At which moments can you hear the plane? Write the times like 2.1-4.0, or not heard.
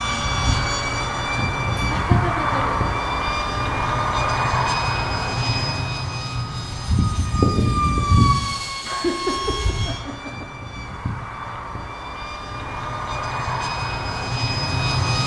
0.0-15.2.